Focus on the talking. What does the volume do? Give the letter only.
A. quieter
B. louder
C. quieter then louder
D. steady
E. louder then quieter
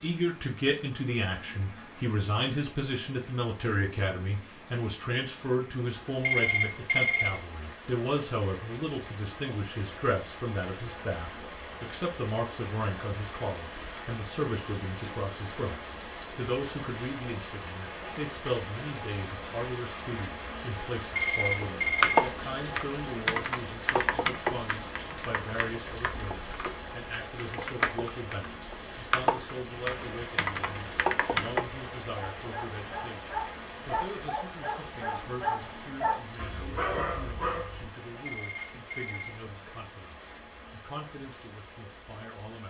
A.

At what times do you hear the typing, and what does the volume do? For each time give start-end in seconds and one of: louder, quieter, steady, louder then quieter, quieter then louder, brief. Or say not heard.
21.6-31.6 quieter then louder.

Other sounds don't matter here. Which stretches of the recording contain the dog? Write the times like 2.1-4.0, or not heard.
32.4-37.9.